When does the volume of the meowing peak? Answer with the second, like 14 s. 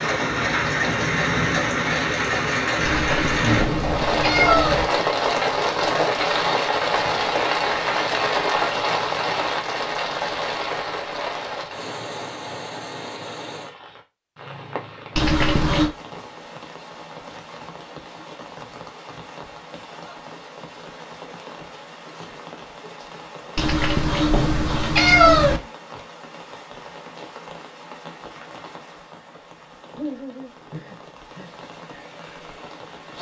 25 s.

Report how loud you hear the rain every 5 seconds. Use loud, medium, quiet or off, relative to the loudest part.
loud, loud, medium, quiet, quiet, quiet, quiet.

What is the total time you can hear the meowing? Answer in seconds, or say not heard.
5 s.